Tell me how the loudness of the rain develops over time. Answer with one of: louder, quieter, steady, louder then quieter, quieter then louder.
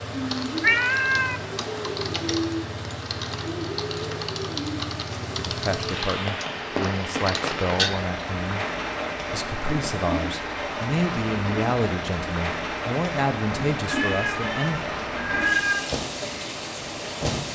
steady.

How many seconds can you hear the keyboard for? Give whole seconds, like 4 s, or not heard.
7 s.